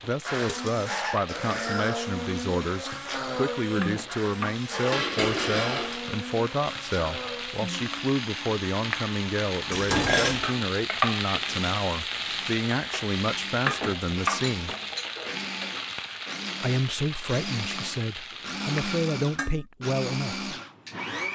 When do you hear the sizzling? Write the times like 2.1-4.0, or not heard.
0.0-19.0.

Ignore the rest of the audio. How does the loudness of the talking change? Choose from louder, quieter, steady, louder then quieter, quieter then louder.
steady.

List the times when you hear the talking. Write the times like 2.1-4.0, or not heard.
0.0-14.8, 16.6-20.5.